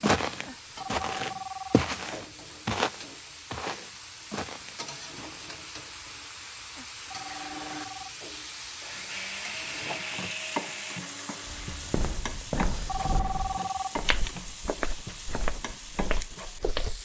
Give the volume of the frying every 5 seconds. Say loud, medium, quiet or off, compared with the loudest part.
medium, loud, loud, loud.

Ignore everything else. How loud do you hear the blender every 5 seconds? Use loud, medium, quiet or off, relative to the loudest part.
off, loud, loud, off.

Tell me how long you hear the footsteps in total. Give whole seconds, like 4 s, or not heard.
11 s.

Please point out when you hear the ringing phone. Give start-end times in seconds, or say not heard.
0.5-1.9, 6.8-8.2, 12.5-14.2.